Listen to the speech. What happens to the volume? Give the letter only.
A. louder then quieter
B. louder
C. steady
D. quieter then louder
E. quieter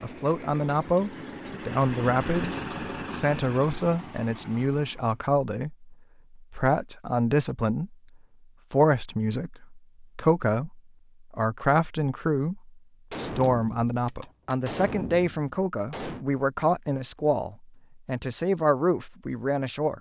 C.